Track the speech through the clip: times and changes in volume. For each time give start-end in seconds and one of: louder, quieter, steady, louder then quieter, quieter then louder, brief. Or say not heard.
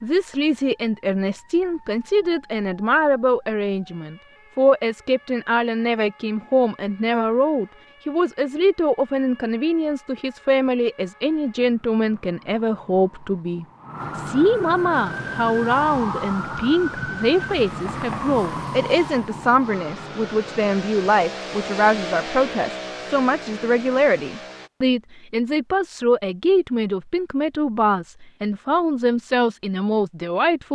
0.0-30.7 steady.